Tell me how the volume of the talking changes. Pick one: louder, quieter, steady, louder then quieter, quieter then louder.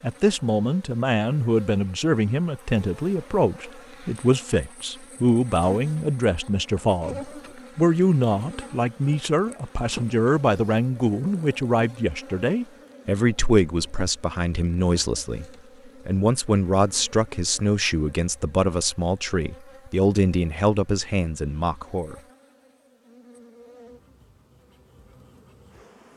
steady.